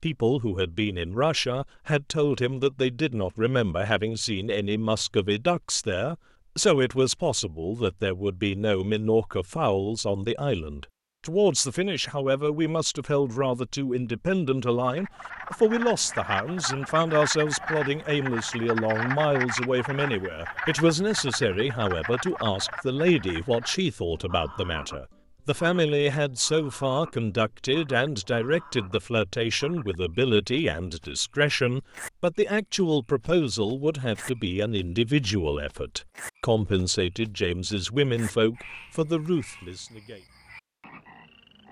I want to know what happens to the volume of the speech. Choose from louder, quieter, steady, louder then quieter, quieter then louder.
steady.